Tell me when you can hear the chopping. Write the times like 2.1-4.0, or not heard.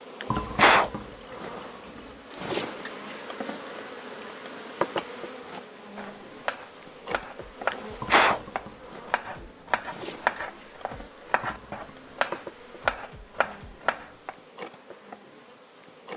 4.9-14.3.